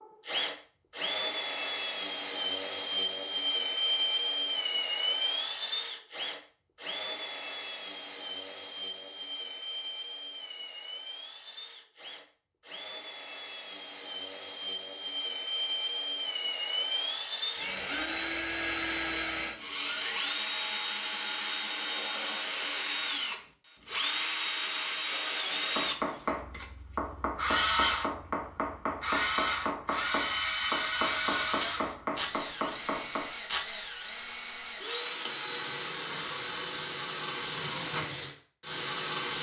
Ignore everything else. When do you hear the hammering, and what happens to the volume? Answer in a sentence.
The hammering can be heard from 25.8 to 33.3 s, at a steady volume.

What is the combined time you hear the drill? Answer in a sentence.
You can hear the drill for 39 seconds altogether.